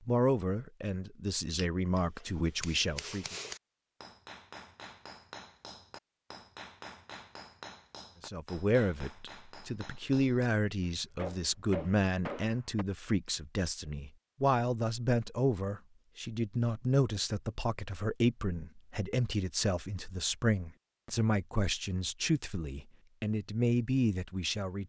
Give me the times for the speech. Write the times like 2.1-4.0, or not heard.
0.1-3.4, 8.2-24.8.